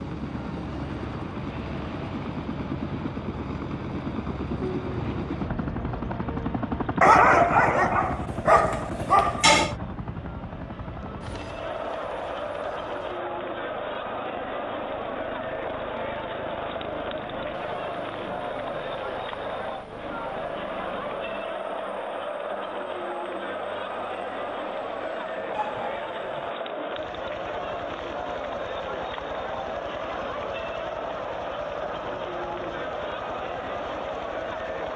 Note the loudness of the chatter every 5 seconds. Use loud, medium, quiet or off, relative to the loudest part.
quiet, quiet, loud, loud, loud, loud, loud.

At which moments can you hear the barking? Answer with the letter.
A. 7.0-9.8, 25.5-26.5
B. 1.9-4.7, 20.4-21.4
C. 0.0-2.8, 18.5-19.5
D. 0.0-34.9
A.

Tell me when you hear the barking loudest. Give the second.
7 s.